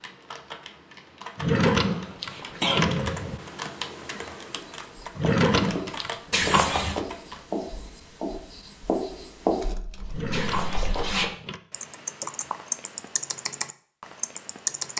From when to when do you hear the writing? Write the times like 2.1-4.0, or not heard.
4.5-11.1.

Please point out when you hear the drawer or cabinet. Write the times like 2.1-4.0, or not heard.
1.4-3.4, 5.2-6.7, 10.1-11.6.